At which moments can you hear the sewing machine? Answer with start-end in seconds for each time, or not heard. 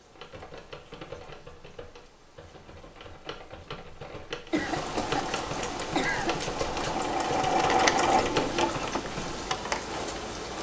4.7-10.5.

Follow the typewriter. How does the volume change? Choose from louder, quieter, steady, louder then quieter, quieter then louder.
louder.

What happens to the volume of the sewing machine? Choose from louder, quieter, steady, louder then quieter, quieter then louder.
louder then quieter.